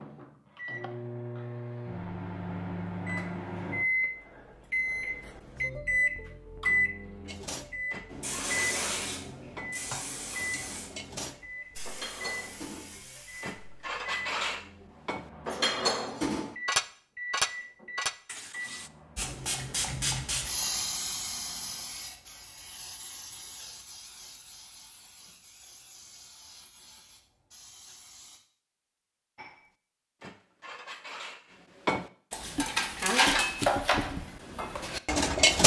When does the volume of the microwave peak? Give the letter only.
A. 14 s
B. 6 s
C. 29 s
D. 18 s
B.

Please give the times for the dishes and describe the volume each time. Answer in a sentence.
You can hear the dishes from 7.2 to 18.9 s, getting louder; and from 29.4 to 35.6 s, getting louder then quieter.